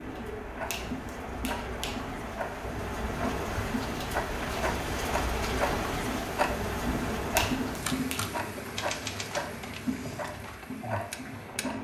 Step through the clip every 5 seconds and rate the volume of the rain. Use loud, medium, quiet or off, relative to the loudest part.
loud, loud, medium.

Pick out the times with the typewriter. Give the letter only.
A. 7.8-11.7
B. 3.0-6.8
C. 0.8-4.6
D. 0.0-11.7
A.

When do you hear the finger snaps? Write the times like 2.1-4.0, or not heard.
0.7-2.0, 7.3-8.2.